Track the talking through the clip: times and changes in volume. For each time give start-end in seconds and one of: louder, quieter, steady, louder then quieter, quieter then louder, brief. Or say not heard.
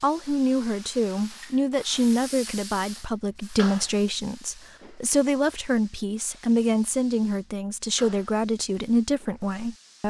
0.0-10.0 steady.